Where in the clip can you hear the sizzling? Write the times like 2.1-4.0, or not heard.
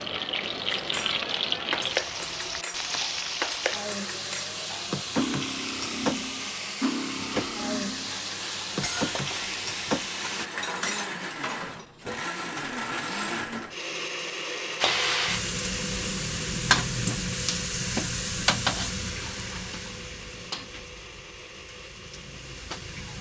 0.0-10.5, 14.8-23.1.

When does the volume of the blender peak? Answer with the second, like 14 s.
13 s.